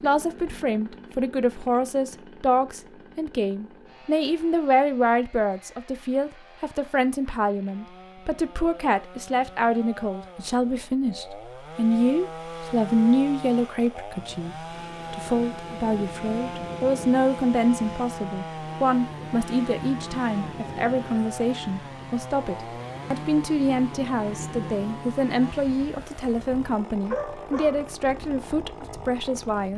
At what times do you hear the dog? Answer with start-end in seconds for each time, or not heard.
26.9-27.9.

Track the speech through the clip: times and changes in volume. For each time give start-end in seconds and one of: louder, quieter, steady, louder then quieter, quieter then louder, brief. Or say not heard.
0.0-29.7 steady.